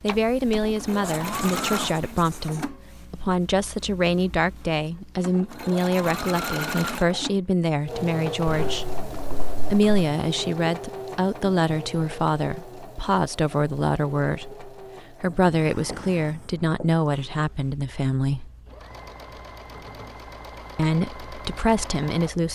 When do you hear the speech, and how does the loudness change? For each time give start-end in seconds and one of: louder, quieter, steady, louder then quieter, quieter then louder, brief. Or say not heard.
0.0-8.9 steady
9.7-18.5 steady
20.8-22.5 brief.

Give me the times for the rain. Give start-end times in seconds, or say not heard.
not heard.